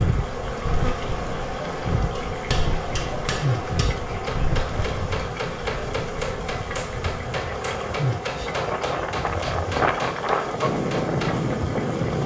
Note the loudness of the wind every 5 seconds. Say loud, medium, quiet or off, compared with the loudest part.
medium, medium, loud.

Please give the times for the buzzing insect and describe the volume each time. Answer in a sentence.
You can hear the buzzing insect from 0.0 to 12.2 s, at a steady volume.